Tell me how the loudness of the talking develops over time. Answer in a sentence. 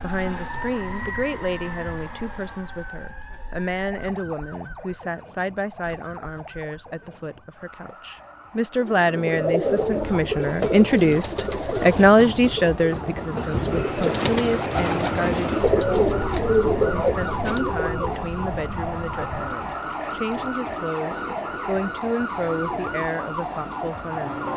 The volume of the talking goes up, then down.